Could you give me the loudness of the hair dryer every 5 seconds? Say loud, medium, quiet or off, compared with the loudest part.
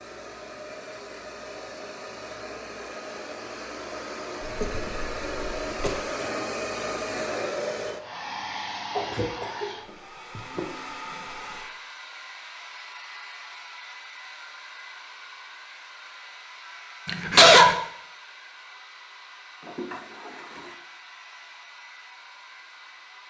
medium, loud, medium, quiet, quiet.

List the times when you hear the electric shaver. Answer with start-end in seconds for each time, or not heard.
not heard.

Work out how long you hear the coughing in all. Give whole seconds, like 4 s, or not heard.
4 s.